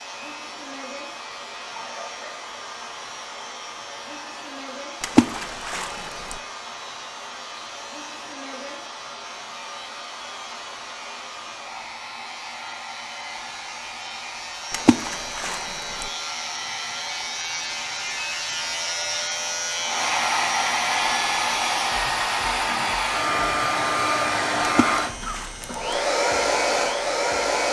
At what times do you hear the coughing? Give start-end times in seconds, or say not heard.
1.7-2.5, 24.9-25.9.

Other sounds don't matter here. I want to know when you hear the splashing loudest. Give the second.
5 s.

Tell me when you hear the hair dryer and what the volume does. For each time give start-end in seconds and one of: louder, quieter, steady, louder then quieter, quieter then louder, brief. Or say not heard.
0.0-27.6 louder.